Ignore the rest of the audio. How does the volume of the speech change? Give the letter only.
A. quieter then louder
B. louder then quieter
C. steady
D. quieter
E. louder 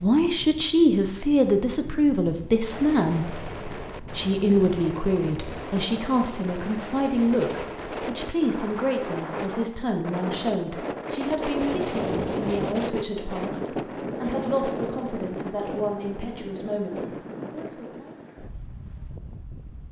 D.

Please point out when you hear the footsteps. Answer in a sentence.
You can't hear the footsteps here.